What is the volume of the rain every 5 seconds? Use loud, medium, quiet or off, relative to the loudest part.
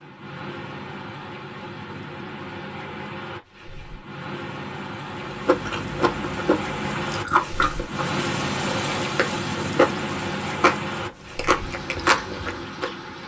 medium, loud, loud.